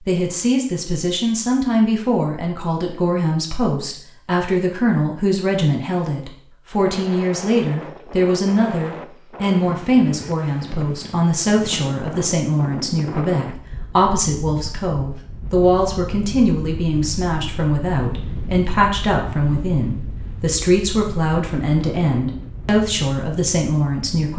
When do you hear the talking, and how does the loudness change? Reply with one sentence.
You can hear the talking from 0.0 to 24.3 s, at a steady volume.